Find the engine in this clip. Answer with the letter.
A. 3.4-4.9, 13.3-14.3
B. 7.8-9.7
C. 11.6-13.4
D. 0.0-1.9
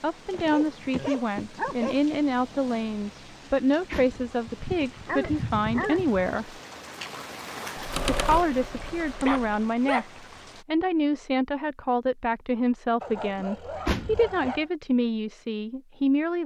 B.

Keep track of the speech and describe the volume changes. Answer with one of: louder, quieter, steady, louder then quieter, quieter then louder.
steady.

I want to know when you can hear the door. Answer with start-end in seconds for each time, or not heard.
3.4-4.9, 13.3-14.3.